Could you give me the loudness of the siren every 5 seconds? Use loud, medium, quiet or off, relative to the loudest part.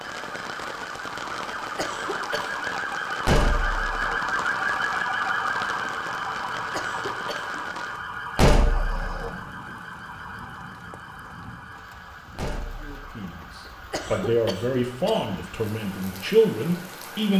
loud, loud, quiet, quiet.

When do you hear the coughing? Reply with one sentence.
The coughing can be heard from 1.8 to 2.6 s, from 6.7 to 7.7 s and from 13.7 to 15.4 s.